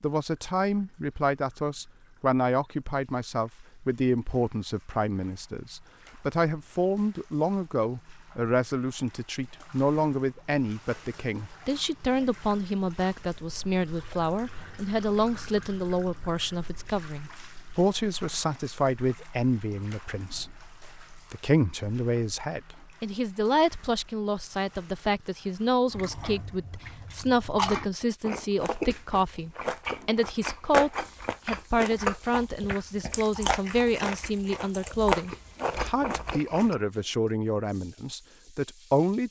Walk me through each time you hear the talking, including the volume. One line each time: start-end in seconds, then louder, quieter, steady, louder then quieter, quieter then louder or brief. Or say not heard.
0.0-39.2 steady.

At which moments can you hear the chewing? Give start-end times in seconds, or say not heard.
25.9-36.8.